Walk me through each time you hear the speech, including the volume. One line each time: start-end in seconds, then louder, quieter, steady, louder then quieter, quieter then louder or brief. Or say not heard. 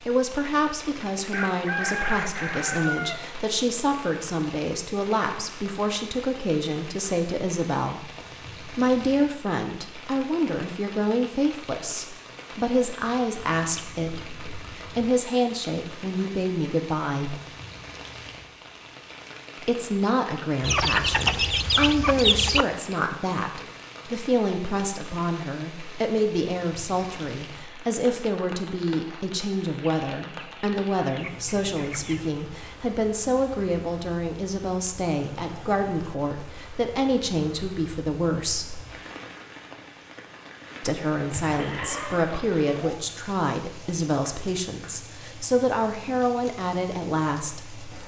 0.1-17.4 steady
19.6-38.8 steady
40.8-47.9 steady.